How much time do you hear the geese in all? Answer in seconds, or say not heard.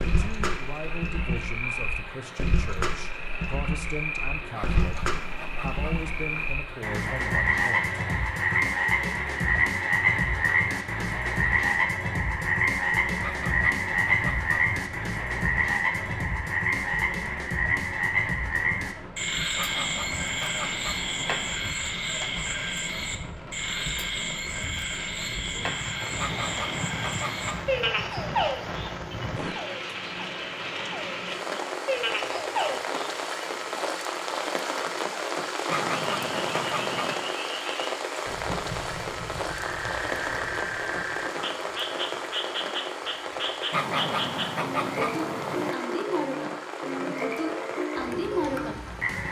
11 s.